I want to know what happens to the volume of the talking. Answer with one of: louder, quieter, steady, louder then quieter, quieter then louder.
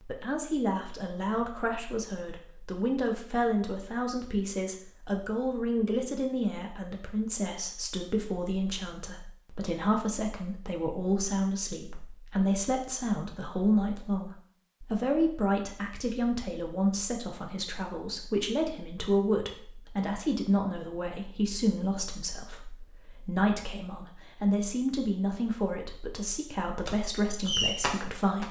steady.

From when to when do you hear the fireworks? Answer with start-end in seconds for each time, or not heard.
26.9-28.4.